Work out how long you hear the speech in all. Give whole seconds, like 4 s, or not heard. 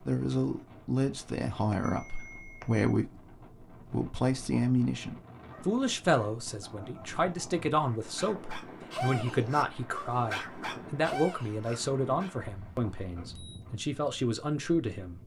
15 s.